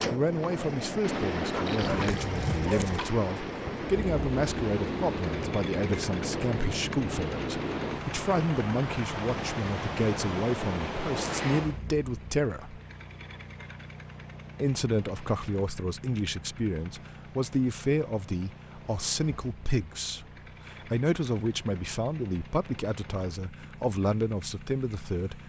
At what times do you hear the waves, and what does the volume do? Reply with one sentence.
You can hear the waves from 0.1 to 25.4 s, getting quieter.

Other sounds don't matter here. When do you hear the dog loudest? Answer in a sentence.
The volume of the dog peaks at 3 seconds.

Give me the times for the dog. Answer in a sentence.
The dog can be heard from 1.4 to 3.1 s.